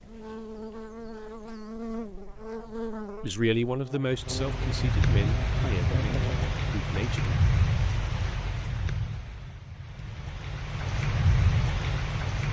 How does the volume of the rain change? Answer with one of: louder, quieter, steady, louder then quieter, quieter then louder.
quieter then louder.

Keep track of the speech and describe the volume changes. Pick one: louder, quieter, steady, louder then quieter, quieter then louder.
quieter.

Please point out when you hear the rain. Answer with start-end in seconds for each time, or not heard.
4.1-12.4.